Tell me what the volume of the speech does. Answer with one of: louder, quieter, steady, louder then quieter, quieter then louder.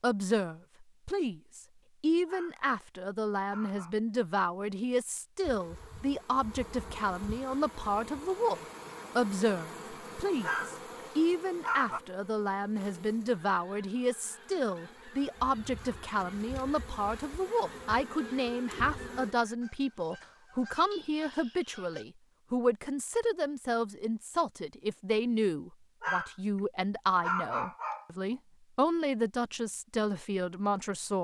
steady.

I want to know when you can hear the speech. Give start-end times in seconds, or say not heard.
0.0-31.1.